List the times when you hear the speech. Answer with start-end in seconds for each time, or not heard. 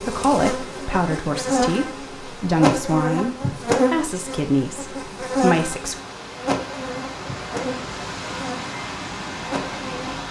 0.0-6.0.